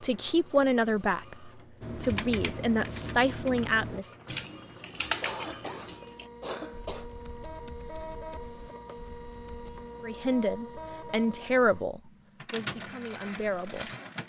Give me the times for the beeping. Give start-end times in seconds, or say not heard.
not heard.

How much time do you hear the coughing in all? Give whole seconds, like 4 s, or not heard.
2 s.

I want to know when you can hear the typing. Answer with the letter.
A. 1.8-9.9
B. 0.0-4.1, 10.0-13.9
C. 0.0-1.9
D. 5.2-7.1
A.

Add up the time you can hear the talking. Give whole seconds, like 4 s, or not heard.
8 s.